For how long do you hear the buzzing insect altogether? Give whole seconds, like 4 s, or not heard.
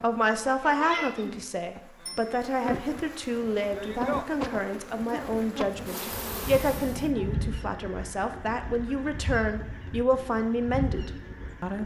7 s.